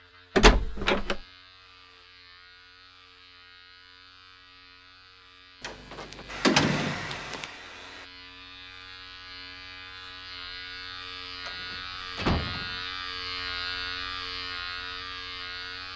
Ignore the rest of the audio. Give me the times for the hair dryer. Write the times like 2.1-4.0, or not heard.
6.2-8.1.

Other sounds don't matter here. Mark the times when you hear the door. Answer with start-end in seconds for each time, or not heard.
0.3-1.2, 5.6-7.5, 11.4-12.8.